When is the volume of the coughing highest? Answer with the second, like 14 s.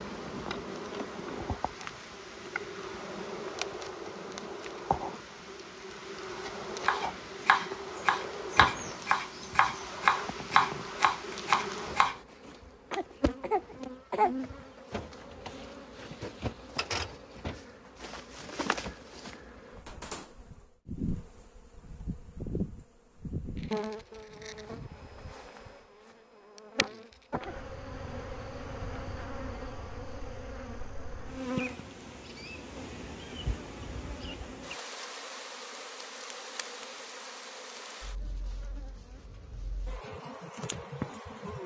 14 s.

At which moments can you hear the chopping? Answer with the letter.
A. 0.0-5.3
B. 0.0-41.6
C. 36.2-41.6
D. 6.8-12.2
D.